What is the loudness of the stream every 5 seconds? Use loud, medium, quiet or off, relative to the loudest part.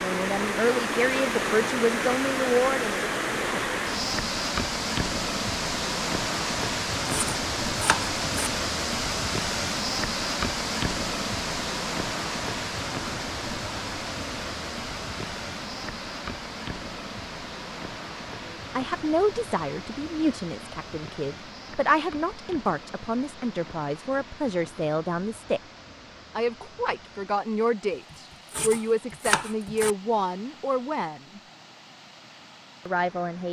loud, loud, loud, medium, quiet, quiet, quiet.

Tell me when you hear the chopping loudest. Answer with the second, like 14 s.
29 s.